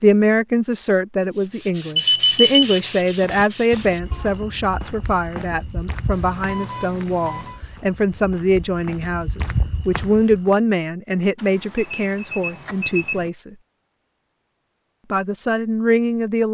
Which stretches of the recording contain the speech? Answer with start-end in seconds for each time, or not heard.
0.0-13.6, 15.1-16.4.